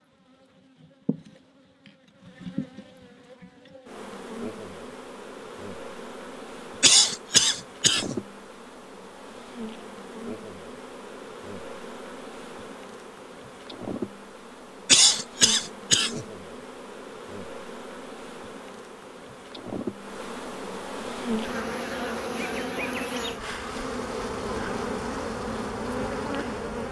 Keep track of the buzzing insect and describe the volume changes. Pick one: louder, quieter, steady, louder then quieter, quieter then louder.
louder.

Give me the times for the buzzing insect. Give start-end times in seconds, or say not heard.
0.2-26.8.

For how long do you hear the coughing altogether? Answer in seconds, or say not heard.
3 s.